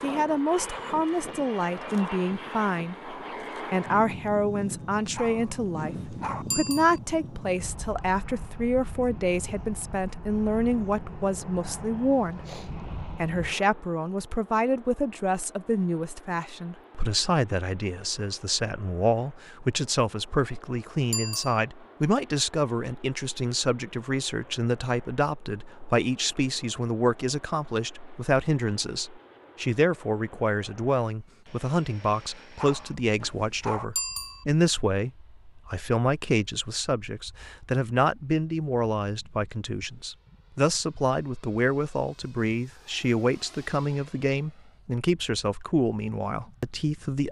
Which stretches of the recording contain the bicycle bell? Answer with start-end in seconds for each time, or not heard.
6.5-7.0, 21.1-21.6, 34.0-34.5.